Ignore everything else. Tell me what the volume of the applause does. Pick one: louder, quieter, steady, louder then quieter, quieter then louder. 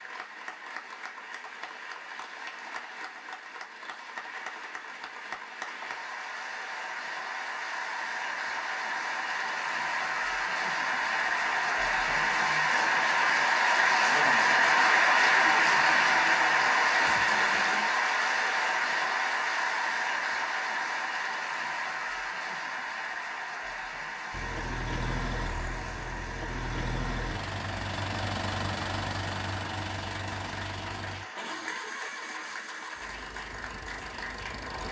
louder then quieter.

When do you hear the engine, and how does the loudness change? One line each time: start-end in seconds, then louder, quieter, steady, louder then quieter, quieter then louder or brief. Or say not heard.
24.3-34.8 quieter.